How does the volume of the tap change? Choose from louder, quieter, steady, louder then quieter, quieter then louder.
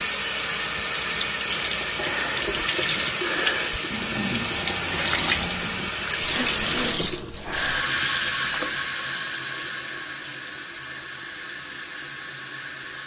quieter.